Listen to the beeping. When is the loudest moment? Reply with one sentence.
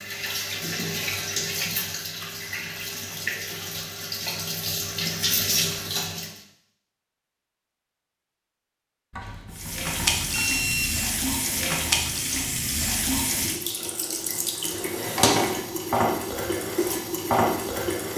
The loudest moment of the beeping is at 11 seconds.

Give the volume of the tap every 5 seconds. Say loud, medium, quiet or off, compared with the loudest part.
medium, loud, loud, loud.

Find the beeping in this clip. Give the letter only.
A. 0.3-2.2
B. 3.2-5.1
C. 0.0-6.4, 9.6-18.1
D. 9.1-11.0
D.